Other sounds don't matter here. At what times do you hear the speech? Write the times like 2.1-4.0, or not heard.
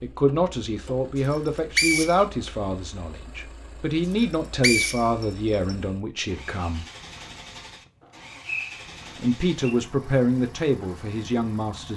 0.0-6.8, 9.2-11.9.